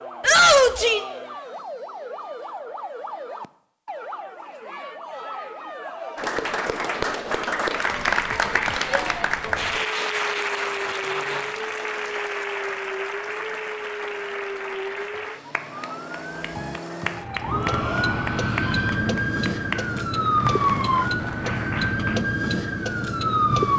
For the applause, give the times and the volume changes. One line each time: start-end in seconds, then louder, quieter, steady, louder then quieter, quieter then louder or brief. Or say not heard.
6.2-22.2 quieter.